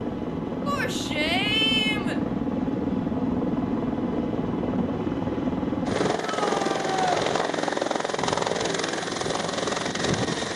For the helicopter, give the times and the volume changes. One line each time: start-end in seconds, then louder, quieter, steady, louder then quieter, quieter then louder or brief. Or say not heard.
0.0-10.5 steady.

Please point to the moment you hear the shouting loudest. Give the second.
2 s.